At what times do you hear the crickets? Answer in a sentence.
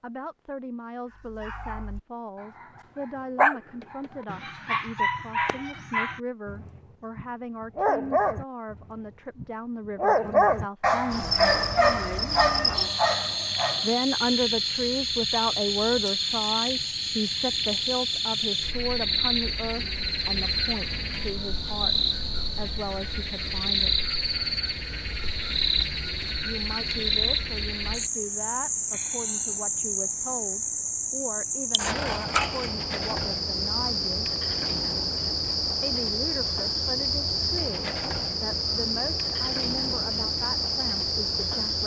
The crickets can be heard from 11.1 to 41.8 s.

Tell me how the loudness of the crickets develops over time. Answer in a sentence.
The volume of the crickets stays about the same.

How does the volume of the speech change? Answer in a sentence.
The loudness of the speech goes up, then down.